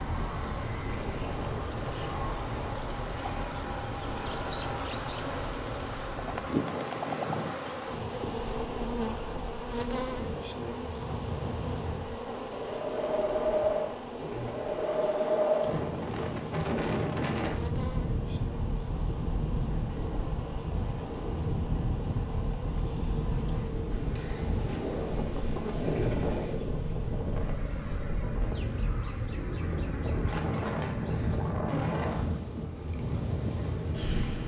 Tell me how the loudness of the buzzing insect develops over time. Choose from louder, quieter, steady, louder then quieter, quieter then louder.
quieter.